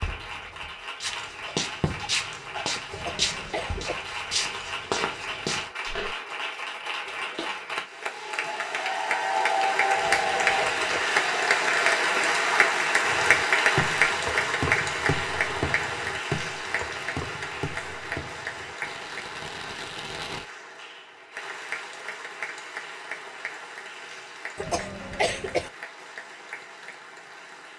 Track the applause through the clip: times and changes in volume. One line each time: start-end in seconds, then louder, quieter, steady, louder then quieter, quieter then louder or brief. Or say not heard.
0.0-27.7 louder then quieter.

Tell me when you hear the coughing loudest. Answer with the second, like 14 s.
25 s.